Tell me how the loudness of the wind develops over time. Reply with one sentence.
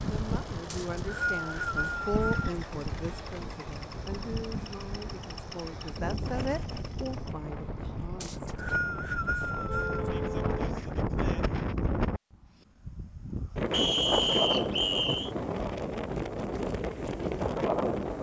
The volume of the wind goes up.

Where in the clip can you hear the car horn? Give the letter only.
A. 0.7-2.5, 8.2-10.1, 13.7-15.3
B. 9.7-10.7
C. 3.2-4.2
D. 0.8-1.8
B.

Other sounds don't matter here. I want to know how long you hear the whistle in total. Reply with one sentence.
The whistle can be heard for 5 seconds in total.